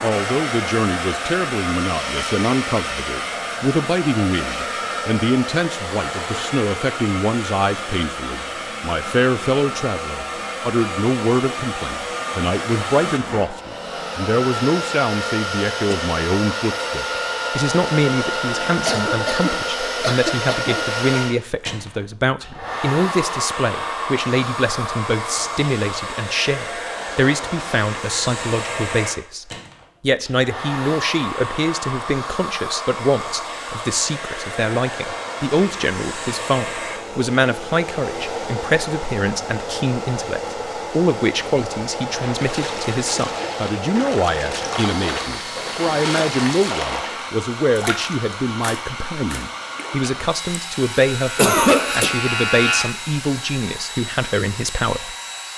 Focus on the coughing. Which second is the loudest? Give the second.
52 s.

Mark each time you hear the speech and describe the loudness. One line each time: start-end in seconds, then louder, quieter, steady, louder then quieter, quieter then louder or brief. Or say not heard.
0.0-55.5 steady.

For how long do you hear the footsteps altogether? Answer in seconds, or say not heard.
not heard.